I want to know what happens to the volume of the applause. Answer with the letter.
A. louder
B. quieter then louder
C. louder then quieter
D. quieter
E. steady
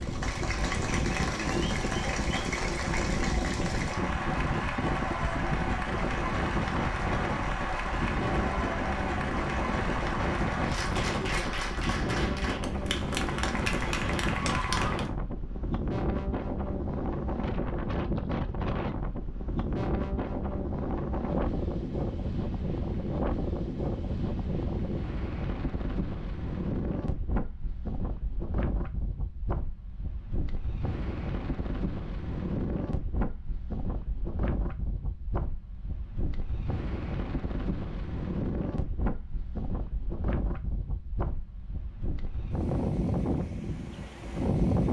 E.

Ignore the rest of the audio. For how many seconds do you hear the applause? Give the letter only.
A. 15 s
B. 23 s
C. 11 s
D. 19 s
A.